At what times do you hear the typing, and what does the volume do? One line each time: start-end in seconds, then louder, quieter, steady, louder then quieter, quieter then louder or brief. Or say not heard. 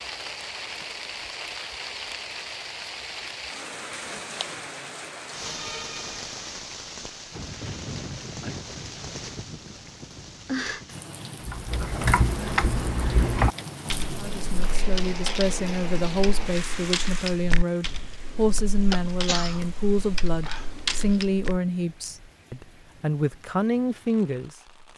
11.4-21.6 quieter.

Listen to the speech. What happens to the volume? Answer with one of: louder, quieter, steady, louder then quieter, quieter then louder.
steady.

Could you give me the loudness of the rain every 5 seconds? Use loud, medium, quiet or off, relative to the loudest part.
loud, loud, loud, loud, quiet.